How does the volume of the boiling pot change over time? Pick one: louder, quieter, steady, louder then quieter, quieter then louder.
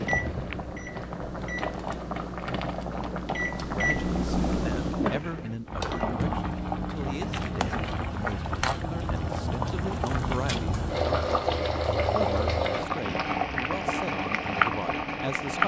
louder.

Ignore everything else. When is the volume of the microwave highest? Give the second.
4 s.